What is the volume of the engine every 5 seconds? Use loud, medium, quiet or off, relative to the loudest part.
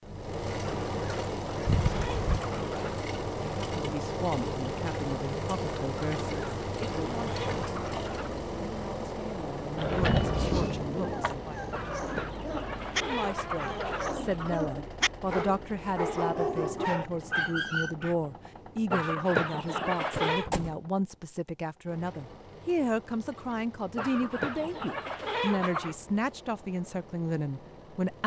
loud, loud, medium, quiet, quiet, quiet.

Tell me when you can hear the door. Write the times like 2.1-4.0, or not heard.
1.6-2.4, 9.8-11.4, 20.1-20.8.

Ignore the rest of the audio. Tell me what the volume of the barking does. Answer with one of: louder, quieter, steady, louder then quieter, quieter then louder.
louder.